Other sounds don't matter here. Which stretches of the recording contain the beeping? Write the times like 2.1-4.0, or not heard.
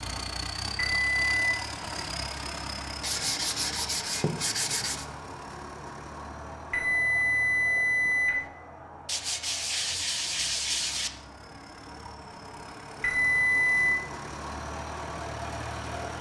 0.8-1.5, 6.7-8.4, 13.0-14.0.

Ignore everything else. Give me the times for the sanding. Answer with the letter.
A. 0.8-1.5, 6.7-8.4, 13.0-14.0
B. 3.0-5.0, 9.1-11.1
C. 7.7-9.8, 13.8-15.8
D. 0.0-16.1
B.